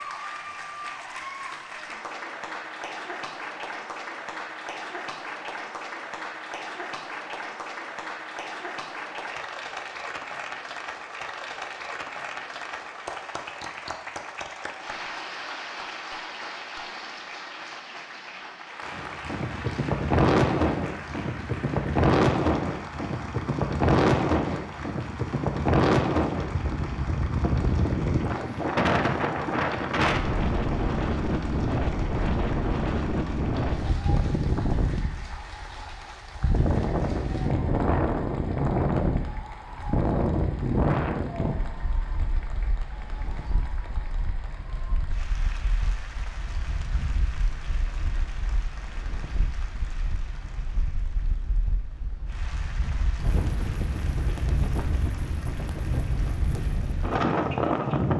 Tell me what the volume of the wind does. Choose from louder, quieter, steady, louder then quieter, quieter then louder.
quieter then louder.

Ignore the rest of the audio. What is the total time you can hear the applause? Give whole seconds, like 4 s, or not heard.
58 s.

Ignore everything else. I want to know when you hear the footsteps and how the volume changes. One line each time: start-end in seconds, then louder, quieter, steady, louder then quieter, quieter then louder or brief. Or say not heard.
not heard.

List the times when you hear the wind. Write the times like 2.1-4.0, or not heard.
18.9-58.1.